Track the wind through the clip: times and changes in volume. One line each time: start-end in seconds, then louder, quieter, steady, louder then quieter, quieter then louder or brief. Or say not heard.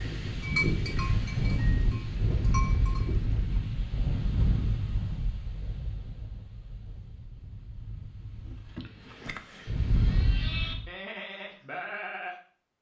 0.0-10.9 quieter then louder.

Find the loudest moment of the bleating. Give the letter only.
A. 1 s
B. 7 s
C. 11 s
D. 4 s
A.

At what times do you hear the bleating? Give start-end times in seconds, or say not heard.
0.0-3.5, 9.9-12.7.